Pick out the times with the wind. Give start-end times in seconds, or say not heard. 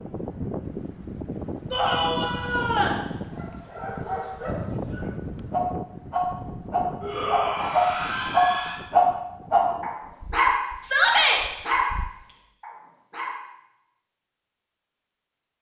0.0-12.1.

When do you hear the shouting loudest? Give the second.
11 s.